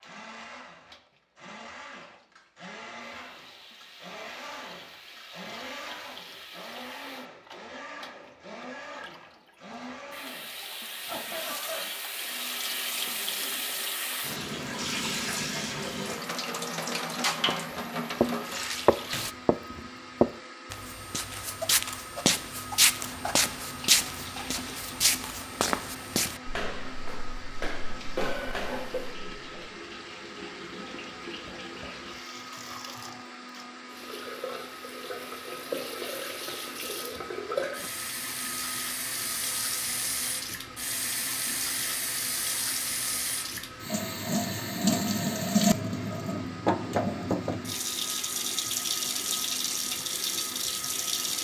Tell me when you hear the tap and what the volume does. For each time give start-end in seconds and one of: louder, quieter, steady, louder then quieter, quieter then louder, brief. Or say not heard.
0.0-19.4 louder
23.0-51.3 louder.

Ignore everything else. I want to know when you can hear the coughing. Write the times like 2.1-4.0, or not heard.
11.1-11.8, 28.1-29.1.